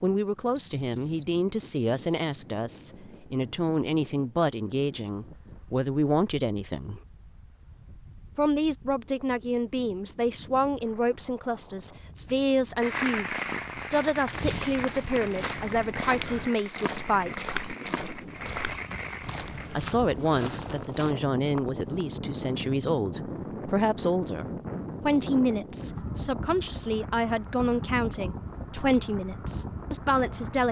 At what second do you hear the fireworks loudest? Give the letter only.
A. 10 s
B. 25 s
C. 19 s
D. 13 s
D.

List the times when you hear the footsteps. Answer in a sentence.
You can hear the footsteps from 14.2 to 21.1 s.